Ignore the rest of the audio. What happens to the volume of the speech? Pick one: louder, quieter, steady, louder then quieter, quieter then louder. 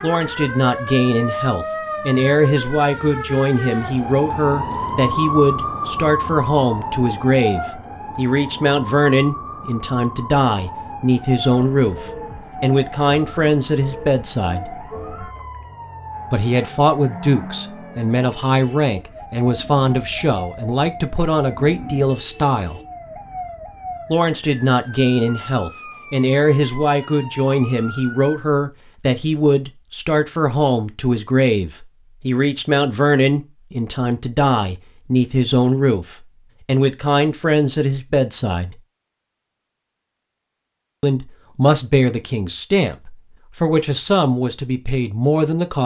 steady.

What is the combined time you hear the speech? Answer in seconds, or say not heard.
41 s.